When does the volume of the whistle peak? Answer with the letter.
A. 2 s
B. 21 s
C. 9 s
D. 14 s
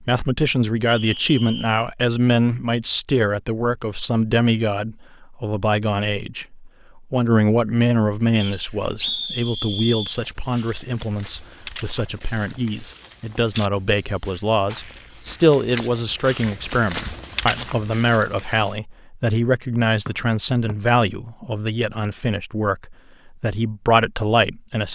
C.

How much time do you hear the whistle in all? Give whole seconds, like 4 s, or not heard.
3 s.